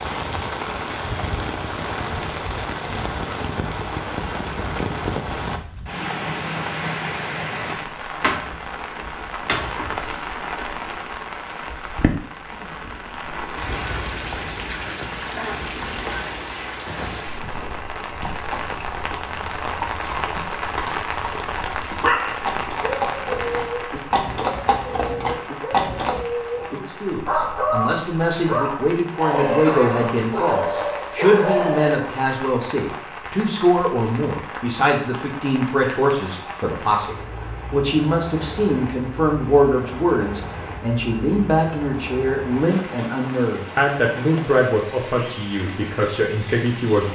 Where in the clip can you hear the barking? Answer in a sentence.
The barking can be heard from 21.9 to 32.1 s.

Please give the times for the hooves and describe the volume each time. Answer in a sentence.
The hooves can be heard from 16.9 to 26.2 s, getting louder.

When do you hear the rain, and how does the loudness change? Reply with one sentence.
The rain can be heard from 0.0 to 47.1 s, getting quieter.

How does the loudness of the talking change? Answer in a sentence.
The volume of the talking stays about the same.